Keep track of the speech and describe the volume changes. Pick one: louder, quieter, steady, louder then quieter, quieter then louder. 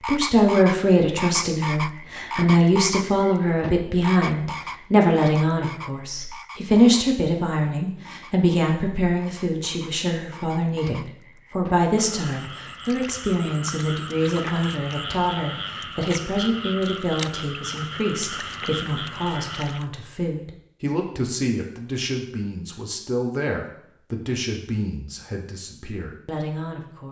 quieter.